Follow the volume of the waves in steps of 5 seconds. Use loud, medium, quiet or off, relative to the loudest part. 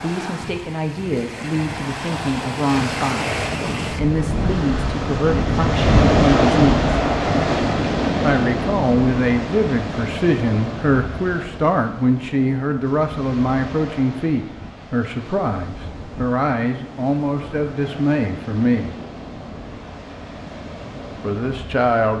medium, loud, quiet, quiet, quiet.